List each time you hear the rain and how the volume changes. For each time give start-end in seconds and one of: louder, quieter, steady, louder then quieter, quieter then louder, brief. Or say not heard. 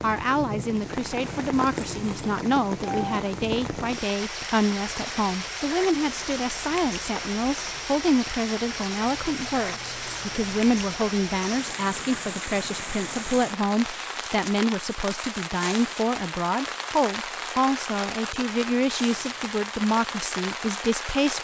0.0-21.3 steady.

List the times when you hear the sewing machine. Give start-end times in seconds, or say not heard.
not heard.